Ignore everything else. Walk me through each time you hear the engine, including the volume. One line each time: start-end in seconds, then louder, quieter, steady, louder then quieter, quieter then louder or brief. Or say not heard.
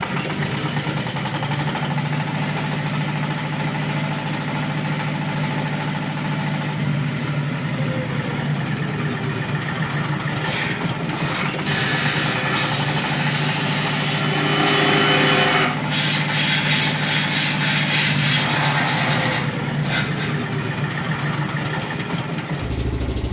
0.0-23.2 steady.